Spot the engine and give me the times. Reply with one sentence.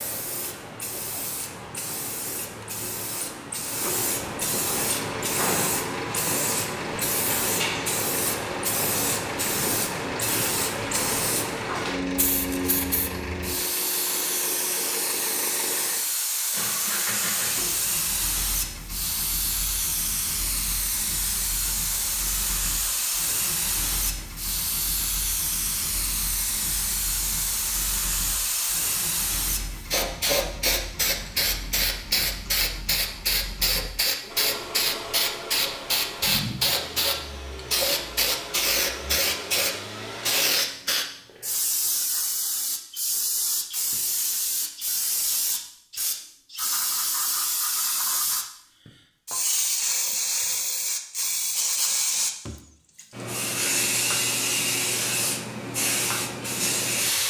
You can hear the engine from 4.7 to 40.4 s.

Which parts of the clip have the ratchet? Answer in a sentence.
The ratchet can't be heard in this clip.